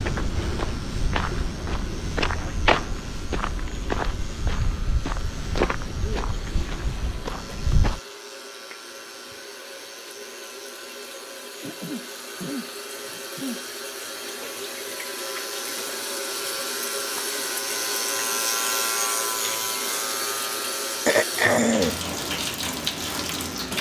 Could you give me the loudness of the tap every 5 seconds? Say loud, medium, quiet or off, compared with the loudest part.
quiet, quiet, medium, loud, loud.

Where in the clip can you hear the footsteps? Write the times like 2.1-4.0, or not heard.
0.0-8.0.